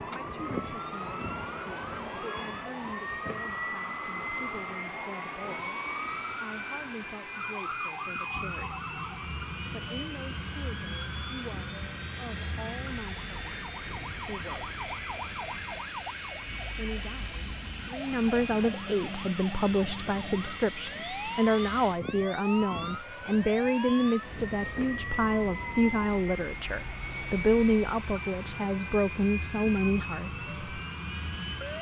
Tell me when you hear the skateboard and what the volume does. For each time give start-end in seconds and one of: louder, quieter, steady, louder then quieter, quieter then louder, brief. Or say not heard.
not heard.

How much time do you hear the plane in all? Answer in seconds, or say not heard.
32 s.